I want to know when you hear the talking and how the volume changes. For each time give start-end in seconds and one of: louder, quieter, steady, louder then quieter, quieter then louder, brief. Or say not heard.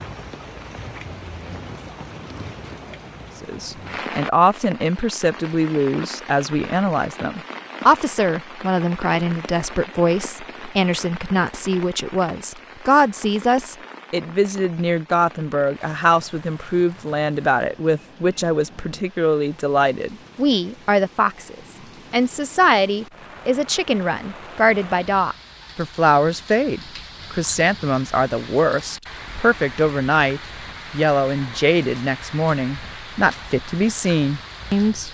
3.4-35.1 steady.